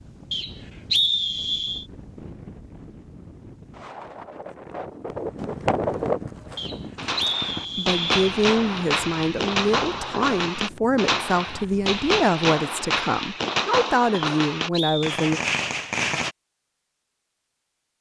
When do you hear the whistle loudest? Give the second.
1 s.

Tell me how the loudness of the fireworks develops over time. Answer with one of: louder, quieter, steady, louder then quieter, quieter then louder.
steady.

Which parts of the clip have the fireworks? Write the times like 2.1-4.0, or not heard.
6.5-16.4.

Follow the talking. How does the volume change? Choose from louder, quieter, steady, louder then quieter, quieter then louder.
steady.